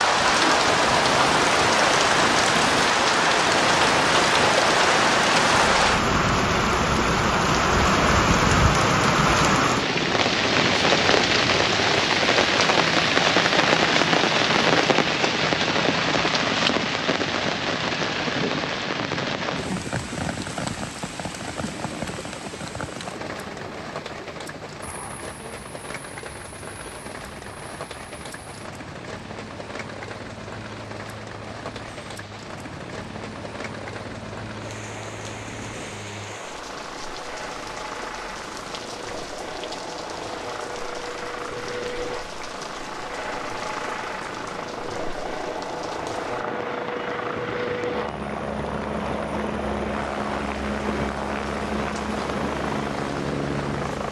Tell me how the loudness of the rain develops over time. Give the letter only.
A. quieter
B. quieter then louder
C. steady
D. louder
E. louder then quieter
A.